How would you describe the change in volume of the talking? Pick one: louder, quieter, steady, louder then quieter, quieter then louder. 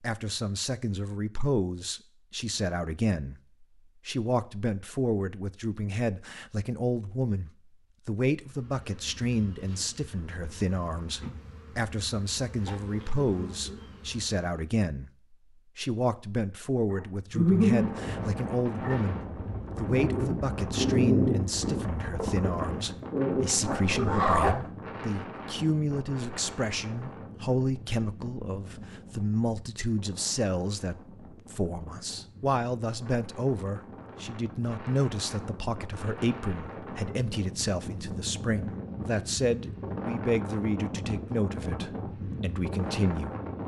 steady.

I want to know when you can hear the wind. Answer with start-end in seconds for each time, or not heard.
17.4-43.6.